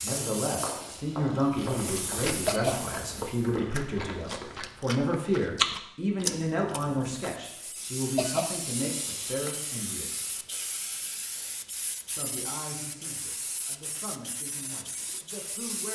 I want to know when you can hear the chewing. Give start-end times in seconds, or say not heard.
1.4-7.3.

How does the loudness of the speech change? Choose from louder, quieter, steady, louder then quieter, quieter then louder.
quieter.